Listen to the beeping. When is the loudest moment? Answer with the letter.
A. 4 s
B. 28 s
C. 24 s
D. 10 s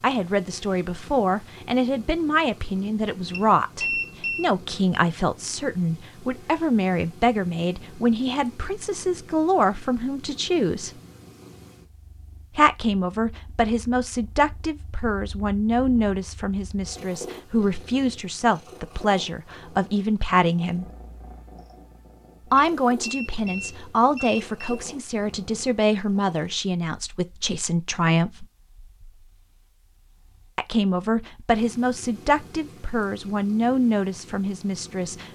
A.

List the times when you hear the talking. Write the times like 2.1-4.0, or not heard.
0.0-10.9, 12.6-20.9, 22.5-28.4, 30.6-35.2.